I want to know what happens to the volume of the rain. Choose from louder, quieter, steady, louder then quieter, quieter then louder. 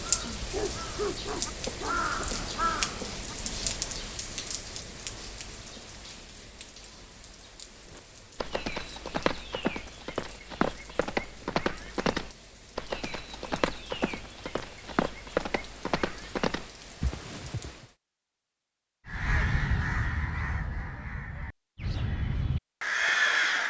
quieter.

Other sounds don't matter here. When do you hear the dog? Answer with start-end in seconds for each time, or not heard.
0.3-2.2.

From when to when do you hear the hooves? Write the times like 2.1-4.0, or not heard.
7.9-17.9.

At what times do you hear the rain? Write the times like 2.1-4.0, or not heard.
0.0-17.9.